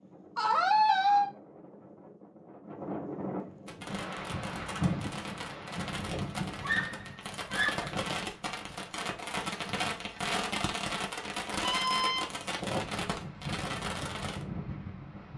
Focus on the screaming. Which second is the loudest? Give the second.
1 s.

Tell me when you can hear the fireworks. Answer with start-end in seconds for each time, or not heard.
3.6-14.4.